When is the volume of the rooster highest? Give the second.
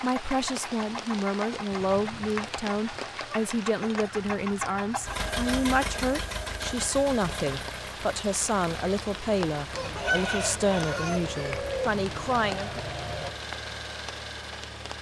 10 s.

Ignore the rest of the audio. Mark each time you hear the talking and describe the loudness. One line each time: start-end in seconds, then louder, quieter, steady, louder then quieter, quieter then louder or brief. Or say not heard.
0.0-12.8 steady.